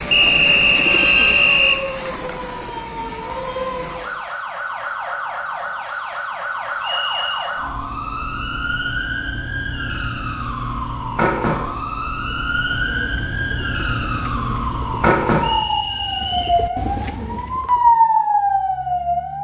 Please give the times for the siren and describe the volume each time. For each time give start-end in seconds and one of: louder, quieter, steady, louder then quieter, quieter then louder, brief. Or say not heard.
0.0-19.3 louder.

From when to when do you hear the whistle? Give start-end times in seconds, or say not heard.
0.1-1.8, 6.8-7.5, 15.4-16.6.